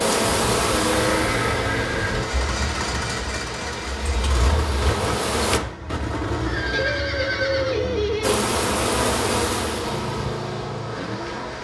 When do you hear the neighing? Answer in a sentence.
The neighing can be heard from 0.2 to 2.2 s and from 6.5 to 8.3 s.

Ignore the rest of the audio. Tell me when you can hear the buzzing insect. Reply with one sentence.
The buzzing insect can be heard from 0.0 to 5.6 s and from 8.2 to 11.5 s.